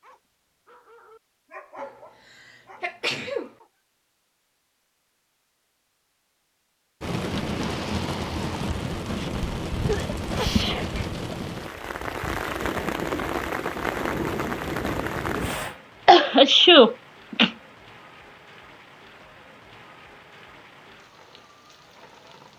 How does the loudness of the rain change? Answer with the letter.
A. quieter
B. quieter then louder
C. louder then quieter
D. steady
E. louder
A.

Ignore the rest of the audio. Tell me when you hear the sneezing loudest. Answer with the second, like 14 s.
17 s.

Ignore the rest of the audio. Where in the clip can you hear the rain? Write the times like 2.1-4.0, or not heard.
7.0-22.5.